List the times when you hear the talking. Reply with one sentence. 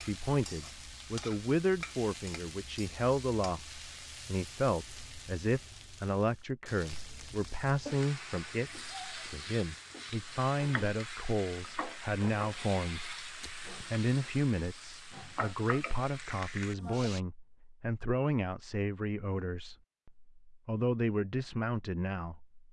You can hear the talking from 0.0 to 22.6 s.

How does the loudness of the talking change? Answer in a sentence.
The volume of the talking stays about the same.